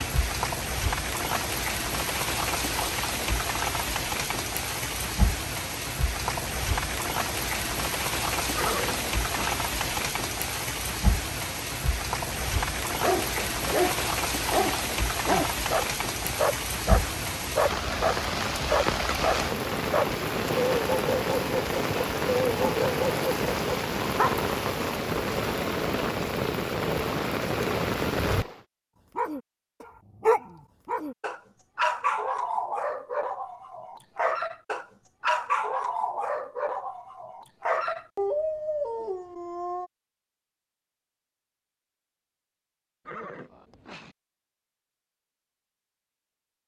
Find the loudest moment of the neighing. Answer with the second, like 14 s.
9 s.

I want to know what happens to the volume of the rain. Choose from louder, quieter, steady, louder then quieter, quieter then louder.
steady.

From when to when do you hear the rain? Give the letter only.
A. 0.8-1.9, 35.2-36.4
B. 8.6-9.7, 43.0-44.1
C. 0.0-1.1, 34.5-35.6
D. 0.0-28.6
D.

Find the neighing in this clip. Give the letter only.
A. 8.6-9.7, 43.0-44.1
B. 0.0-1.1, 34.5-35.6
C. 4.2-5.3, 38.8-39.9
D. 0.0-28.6
A.